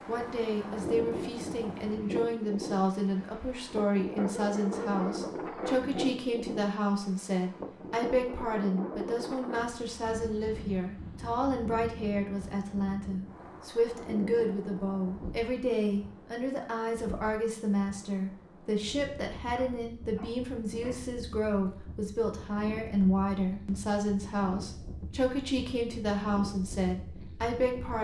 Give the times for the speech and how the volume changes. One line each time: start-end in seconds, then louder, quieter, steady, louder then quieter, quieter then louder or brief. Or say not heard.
0.1-27.9 steady.